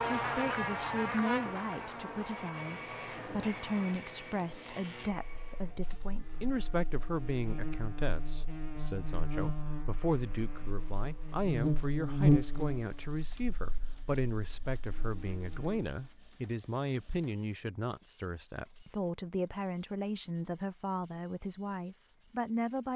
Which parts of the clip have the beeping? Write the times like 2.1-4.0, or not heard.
not heard.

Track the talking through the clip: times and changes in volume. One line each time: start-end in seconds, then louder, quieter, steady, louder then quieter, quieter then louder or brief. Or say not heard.
0.0-22.9 steady.